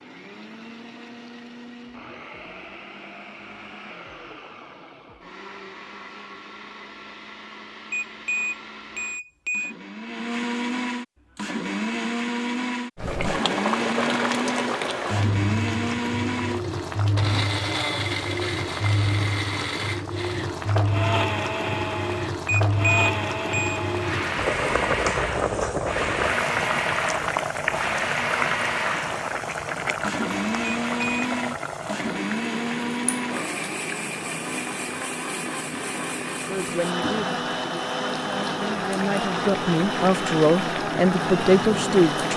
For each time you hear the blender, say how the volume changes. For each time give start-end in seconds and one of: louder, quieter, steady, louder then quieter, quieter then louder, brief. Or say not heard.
0.0-42.3 louder.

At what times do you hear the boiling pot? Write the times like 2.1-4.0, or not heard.
12.9-42.3.